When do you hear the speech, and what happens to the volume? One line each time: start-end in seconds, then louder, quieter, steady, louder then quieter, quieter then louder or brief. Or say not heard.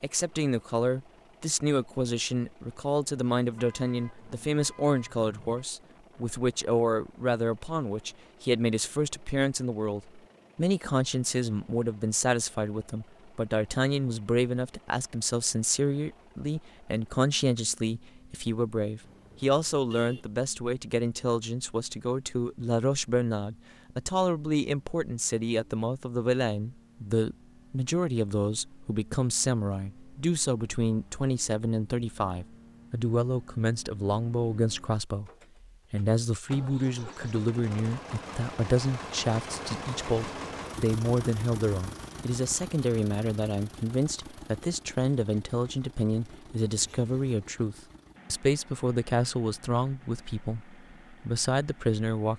0.0-52.3 steady.